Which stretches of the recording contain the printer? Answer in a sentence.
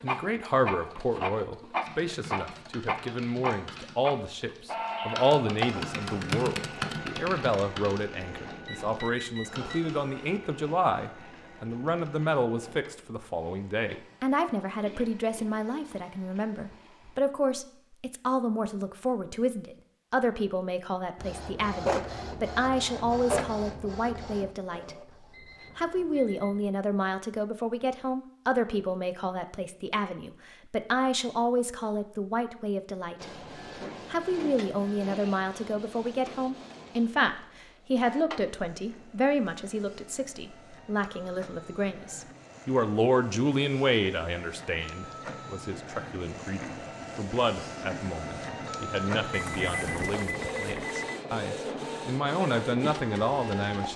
You can hear the printer from 0.0 to 17.2 s, from 21.1 to 26.2 s and from 33.1 to 53.9 s.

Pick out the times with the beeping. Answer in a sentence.
The beeping can be heard from 8.7 to 9.8 s, from 25.3 to 26.9 s and from 49.3 to 51.2 s.